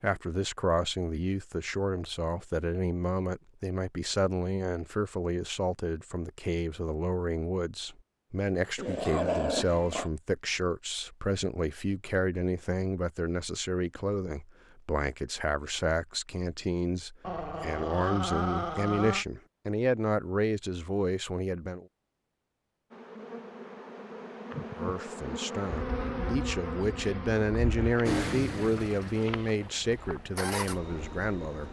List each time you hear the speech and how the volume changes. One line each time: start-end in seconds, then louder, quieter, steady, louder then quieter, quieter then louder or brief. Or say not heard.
0.0-21.9 steady
24.8-31.6 louder then quieter.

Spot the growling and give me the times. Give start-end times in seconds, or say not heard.
8.8-10.1, 17.2-19.2.